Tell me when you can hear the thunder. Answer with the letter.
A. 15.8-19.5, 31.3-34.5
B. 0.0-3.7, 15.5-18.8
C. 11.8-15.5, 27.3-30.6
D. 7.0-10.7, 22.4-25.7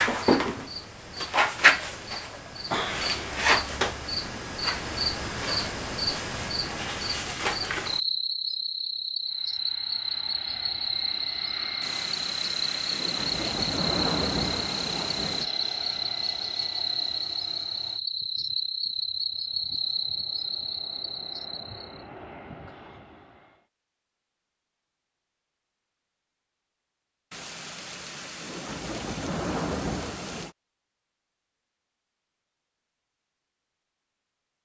C.